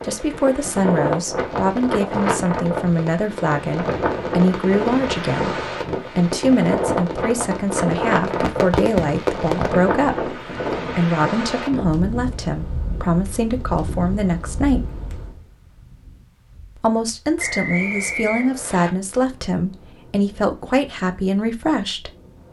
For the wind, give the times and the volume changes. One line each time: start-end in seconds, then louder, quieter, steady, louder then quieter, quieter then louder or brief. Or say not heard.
0.0-22.4 quieter.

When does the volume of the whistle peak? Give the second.
18 s.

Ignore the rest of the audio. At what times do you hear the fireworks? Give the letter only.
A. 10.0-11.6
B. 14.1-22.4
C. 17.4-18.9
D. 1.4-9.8
D.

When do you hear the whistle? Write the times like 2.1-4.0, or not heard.
17.4-18.9.